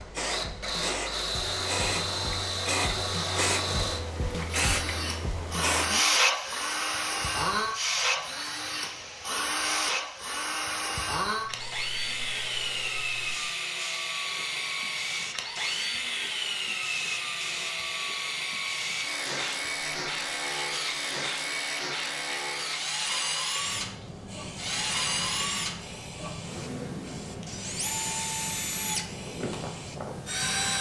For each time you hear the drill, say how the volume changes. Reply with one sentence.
You can hear the drill from 0.0 to 30.7 s, at a steady volume.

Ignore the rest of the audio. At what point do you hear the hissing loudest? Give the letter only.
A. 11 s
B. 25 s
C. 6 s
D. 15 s
C.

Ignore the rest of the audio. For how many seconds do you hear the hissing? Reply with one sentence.
You can hear the hissing for 31 seconds altogether.